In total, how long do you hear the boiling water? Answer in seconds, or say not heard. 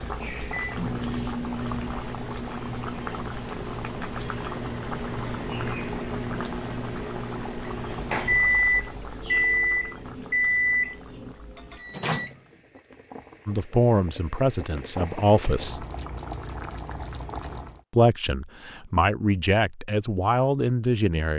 18 s.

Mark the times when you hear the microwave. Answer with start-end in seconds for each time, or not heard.
0.0-12.3.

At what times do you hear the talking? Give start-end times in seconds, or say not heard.
13.4-15.8, 17.9-21.3.